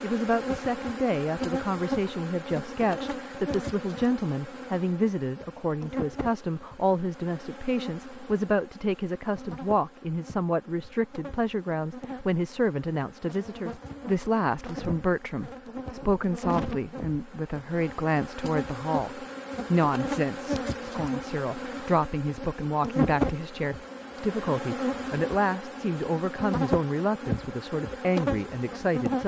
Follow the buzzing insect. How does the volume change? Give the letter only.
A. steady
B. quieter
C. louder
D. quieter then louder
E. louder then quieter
D.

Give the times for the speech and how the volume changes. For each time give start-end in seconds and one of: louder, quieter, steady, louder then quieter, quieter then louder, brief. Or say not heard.
0.0-29.2 steady.